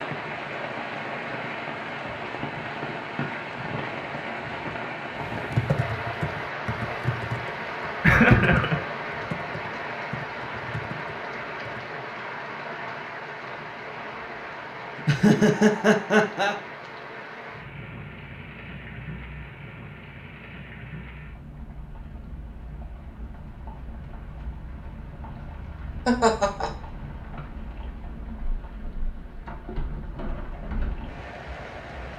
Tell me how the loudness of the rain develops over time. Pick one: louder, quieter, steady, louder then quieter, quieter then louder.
quieter.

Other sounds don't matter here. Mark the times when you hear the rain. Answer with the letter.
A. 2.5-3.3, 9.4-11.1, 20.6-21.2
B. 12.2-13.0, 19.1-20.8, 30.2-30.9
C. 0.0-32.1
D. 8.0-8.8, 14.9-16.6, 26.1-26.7
C.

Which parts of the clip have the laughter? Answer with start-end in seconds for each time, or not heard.
8.0-8.8, 14.9-16.6, 26.1-26.7.